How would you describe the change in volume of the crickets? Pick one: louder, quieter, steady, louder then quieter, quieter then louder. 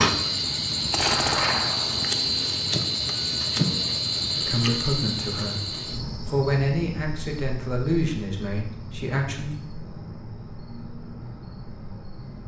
quieter.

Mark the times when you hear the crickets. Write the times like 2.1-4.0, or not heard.
0.0-12.4.